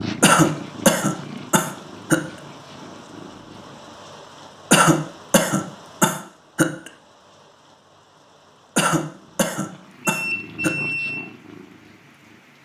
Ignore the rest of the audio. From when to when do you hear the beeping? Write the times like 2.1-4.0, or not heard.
10.1-11.2.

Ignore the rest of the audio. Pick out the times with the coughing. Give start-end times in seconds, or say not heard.
0.2-2.2, 4.7-6.9, 8.8-10.7.